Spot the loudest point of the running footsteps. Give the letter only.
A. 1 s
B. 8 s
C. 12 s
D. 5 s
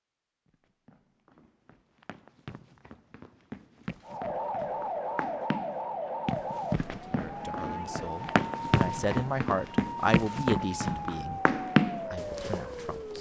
C.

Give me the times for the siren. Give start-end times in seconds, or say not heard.
4.0-13.1.